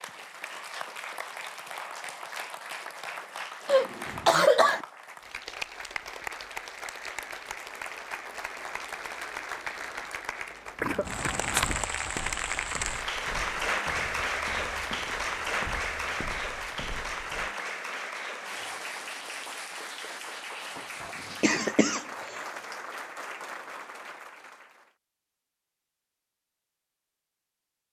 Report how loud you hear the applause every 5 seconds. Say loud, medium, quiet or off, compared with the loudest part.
medium, medium, loud, loud, medium, off.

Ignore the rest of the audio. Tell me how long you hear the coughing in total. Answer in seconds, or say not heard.
3 s.